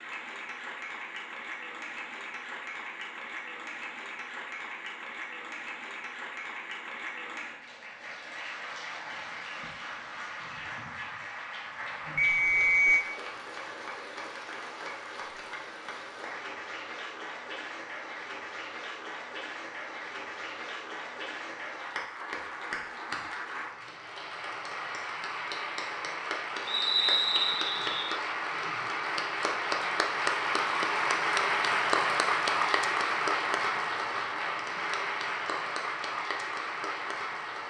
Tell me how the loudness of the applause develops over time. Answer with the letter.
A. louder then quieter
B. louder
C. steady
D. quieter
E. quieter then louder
B.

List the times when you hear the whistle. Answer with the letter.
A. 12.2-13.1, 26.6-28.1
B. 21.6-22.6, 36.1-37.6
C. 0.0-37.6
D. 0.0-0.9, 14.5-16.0
A.